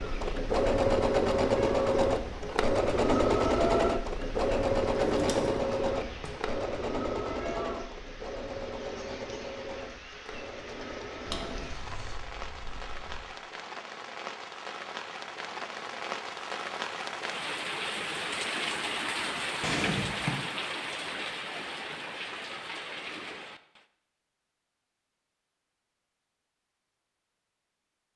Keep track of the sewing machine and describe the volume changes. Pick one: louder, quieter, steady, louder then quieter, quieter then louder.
quieter.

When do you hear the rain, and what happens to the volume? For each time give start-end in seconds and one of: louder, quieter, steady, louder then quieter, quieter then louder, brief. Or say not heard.
0.0-23.9 louder.